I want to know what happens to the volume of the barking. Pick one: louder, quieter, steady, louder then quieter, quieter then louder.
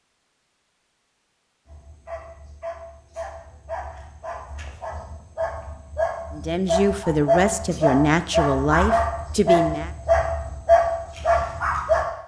louder.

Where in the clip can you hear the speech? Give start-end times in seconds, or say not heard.
6.3-9.9.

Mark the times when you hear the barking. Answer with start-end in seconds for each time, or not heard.
1.6-12.1.